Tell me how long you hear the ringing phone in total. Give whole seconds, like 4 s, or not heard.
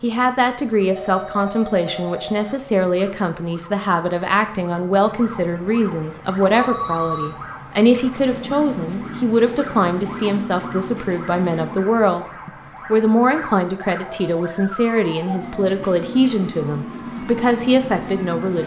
4 s.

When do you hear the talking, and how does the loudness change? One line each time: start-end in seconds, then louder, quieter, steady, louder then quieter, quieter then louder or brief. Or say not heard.
0.0-18.6 steady.